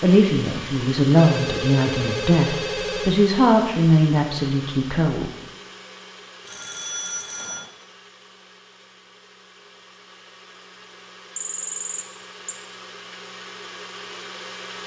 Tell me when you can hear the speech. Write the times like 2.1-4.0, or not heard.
0.0-5.3.